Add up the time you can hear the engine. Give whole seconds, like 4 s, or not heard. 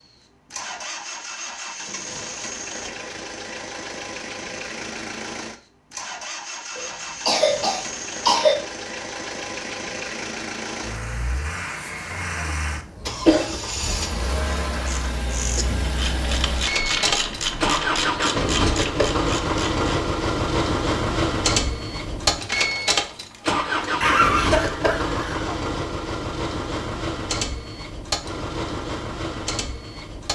30 s.